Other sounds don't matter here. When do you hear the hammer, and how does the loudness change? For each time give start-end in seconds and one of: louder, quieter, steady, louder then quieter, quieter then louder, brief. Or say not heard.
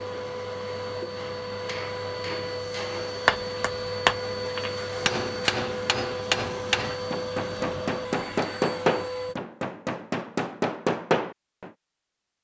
1.1-11.7 steady.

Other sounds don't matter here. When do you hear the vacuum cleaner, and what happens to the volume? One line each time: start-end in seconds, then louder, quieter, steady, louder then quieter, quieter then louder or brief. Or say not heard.
0.0-9.3 steady.